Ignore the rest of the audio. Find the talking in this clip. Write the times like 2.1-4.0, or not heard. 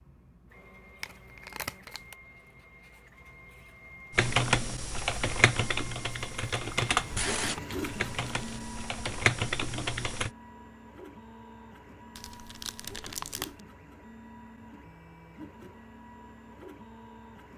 not heard.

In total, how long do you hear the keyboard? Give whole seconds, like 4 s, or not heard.
6 s.